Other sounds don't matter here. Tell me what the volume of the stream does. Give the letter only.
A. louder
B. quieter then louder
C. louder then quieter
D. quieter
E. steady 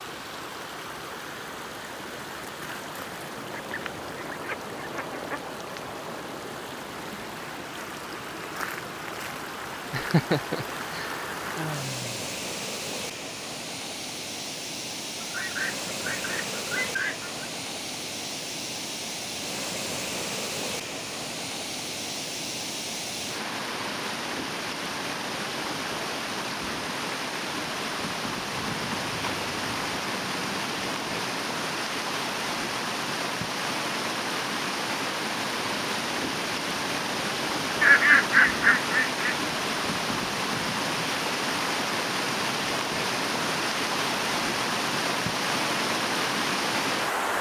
A.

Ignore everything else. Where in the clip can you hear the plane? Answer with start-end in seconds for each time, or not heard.
not heard.